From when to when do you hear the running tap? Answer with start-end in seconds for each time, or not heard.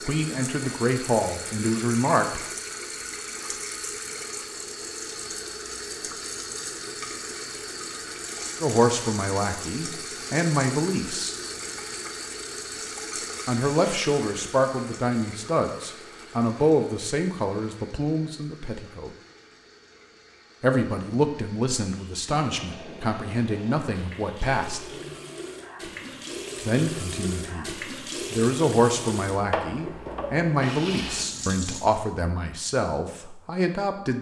0.0-32.1.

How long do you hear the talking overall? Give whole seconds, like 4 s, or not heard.
22 s.